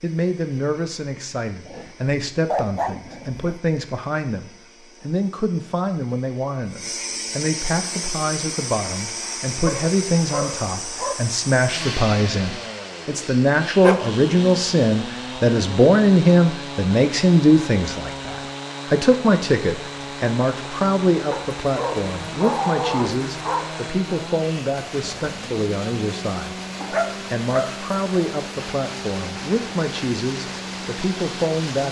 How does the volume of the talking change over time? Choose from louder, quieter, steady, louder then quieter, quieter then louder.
louder then quieter.